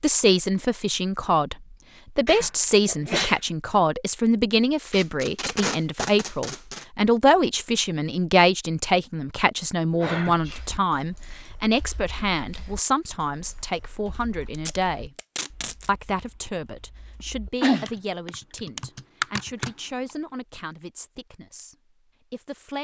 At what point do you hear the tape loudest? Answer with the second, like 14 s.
6 s.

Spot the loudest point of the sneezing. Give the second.
18 s.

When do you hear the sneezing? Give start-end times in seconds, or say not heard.
2.2-3.4, 9.9-10.7, 17.6-18.3.